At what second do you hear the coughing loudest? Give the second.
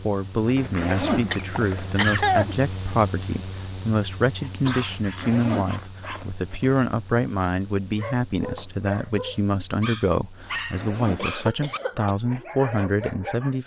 2 s.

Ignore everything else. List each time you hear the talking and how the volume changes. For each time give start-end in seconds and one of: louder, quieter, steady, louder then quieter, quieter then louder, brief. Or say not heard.
0.0-13.6 steady.